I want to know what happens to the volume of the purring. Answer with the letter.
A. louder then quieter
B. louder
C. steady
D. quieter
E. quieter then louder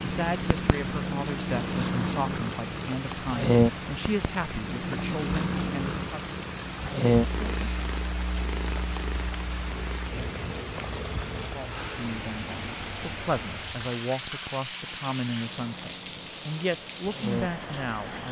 D.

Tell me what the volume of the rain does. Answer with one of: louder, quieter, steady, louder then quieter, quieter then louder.
steady.